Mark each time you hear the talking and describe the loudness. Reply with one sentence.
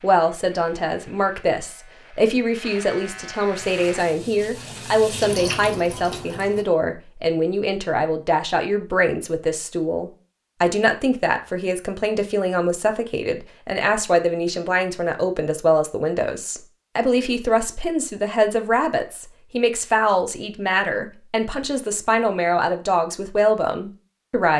The talking can be heard from 0.0 to 24.5 s, at a steady volume.